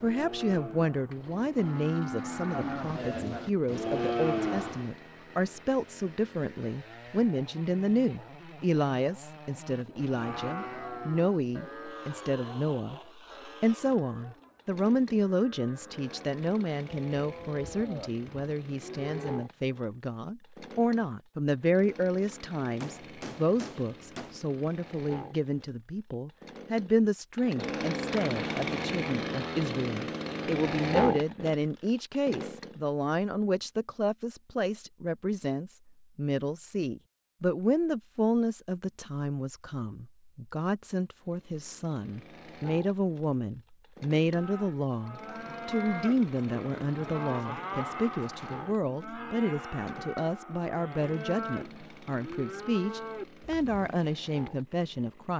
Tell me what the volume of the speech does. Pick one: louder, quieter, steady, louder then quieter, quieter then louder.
steady.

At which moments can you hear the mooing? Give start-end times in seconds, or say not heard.
0.0-5.0, 9.7-19.4, 44.3-54.0.